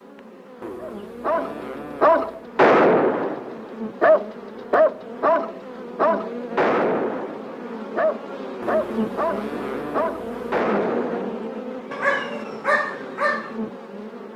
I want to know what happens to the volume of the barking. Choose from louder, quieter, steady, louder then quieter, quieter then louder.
quieter.